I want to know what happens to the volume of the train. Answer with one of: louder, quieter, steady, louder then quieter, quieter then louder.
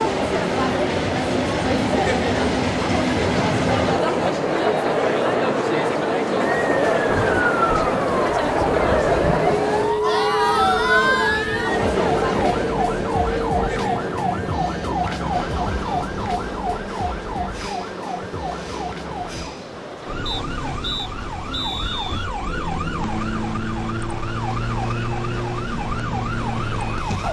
quieter.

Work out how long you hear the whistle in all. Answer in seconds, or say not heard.
2 s.